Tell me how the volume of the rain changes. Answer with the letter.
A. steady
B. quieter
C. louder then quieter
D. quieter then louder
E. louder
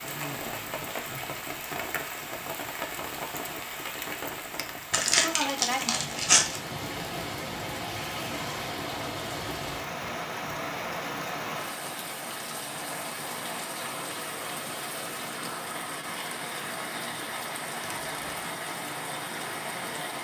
A.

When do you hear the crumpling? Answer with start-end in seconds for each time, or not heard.
4.9-6.6, 17.8-18.4.